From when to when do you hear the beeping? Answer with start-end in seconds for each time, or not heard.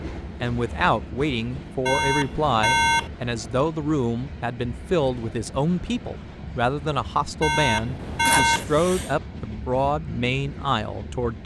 1.9-3.1, 7.4-8.7.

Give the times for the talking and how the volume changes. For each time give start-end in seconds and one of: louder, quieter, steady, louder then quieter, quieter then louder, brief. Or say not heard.
0.4-11.4 steady.